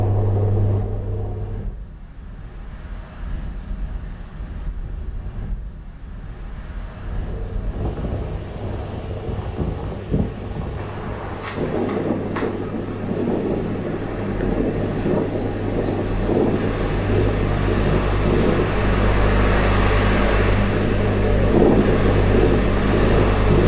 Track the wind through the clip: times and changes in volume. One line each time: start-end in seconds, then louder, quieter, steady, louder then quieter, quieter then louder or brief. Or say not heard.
0.0-23.6 louder.